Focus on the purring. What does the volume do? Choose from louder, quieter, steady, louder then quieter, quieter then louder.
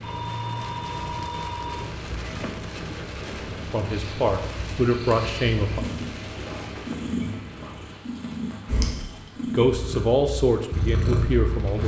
louder.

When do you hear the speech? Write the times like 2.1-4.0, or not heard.
3.7-5.8, 9.5-11.8.